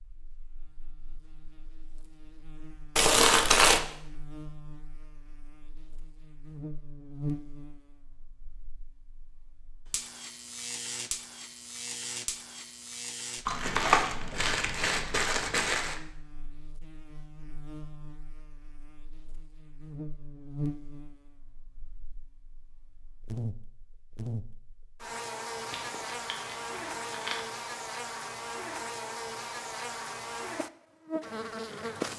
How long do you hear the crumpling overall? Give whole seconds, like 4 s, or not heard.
5 s.